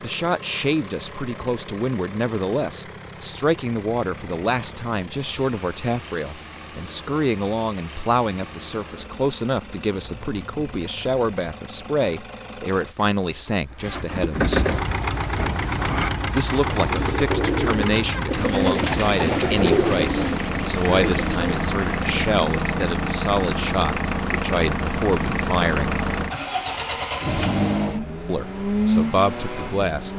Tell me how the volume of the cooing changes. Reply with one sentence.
The volume of the cooing goes up, then down.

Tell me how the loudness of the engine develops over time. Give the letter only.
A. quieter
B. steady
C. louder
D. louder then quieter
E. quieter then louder
C.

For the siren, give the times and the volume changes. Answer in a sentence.
You can't hear the siren here.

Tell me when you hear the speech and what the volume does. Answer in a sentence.
The speech can be heard from 0.0 to 14.7 s, at a steady volume; from 16.3 to 26.0 s, at a steady volume; and briefly from 28.2 to 30.1 s.